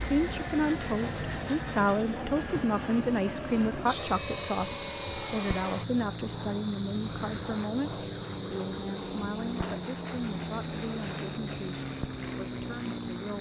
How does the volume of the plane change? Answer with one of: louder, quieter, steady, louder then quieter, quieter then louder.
steady.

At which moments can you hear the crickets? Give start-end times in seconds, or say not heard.
0.0-13.3.